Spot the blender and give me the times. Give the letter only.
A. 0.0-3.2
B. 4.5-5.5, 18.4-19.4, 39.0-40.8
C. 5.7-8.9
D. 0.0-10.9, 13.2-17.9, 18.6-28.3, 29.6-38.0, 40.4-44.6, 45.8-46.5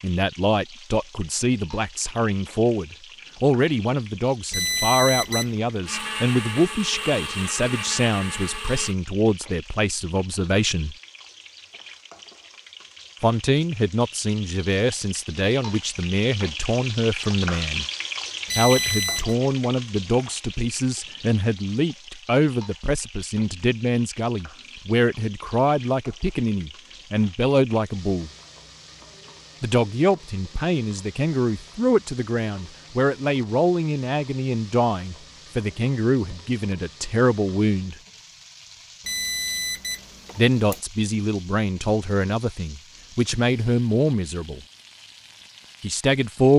C.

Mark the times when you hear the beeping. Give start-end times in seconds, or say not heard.
4.5-5.5, 18.4-19.4, 39.0-40.8.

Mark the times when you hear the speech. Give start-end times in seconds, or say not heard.
0.0-10.9, 13.2-17.9, 18.6-28.3, 29.6-38.0, 40.4-44.6, 45.8-46.5.